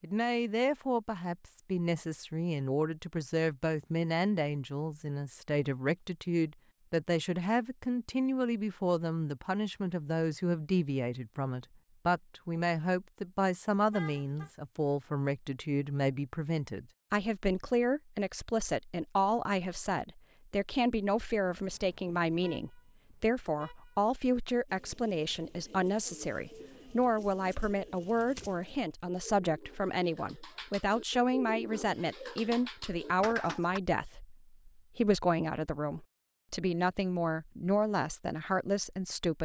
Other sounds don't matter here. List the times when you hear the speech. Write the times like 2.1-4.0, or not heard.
0.0-39.4.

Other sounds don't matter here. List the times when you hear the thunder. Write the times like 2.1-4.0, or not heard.
not heard.